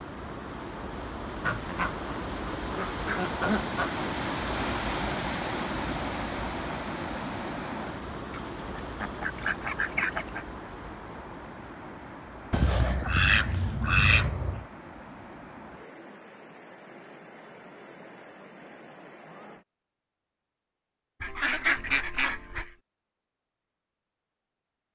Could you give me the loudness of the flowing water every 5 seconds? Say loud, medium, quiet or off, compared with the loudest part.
loud, loud, medium, quiet, off.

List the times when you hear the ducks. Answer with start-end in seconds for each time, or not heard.
1.4-3.9, 8.6-10.4, 12.5-14.7, 21.2-22.7.